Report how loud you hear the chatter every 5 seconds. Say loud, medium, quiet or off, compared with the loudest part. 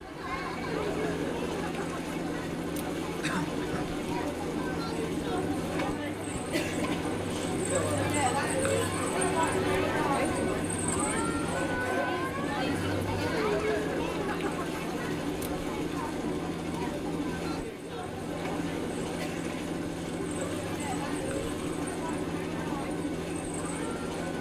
medium, loud, loud, medium, medium.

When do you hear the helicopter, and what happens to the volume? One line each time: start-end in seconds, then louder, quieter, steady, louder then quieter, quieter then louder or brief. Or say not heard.
0.0-24.3 steady.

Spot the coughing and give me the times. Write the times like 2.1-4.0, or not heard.
3.2-3.9.